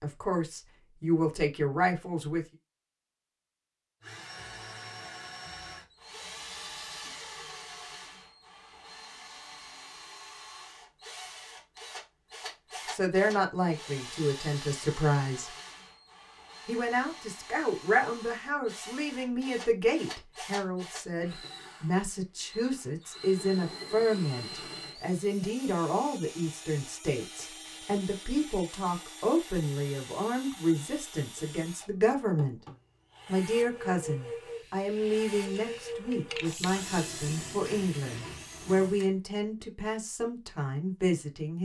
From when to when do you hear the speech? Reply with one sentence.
The speech can be heard from 0.0 to 2.5 s, from 12.9 to 15.6 s, from 16.6 to 32.6 s and from 33.2 to 41.6 s.